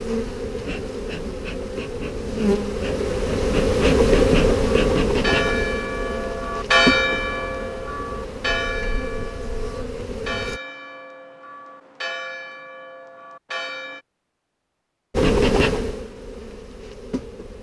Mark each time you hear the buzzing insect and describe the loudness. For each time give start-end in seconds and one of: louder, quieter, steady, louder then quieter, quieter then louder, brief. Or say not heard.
0.0-10.6 louder then quieter
15.2-17.5 brief.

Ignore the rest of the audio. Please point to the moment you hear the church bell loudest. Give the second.
7 s.